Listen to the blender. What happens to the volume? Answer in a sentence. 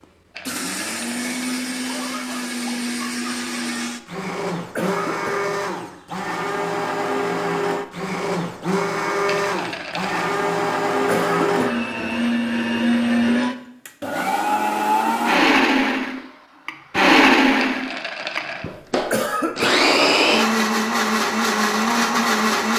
The volume of the blender goes up.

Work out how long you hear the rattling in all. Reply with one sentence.
The rattling can be heard for 3 seconds in total.